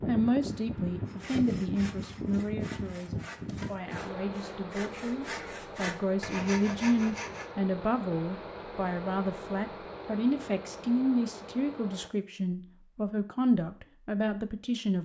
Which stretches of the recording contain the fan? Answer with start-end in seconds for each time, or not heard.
0.0-12.1.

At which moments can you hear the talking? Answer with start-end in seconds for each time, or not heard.
0.0-14.9.